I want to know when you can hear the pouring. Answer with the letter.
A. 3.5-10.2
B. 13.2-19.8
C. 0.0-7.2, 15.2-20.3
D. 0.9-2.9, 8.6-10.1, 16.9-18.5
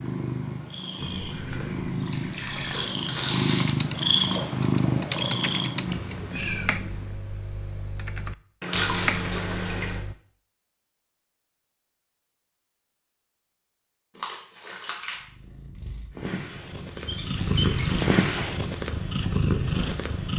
D.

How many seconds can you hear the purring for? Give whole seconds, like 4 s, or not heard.
12 s.